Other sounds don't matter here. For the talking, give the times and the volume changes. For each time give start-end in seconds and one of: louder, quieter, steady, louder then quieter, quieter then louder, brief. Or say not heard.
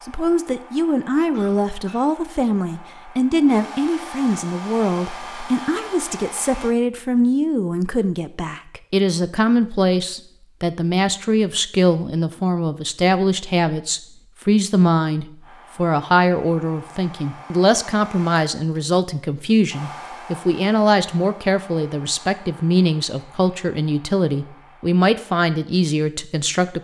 0.1-26.8 steady.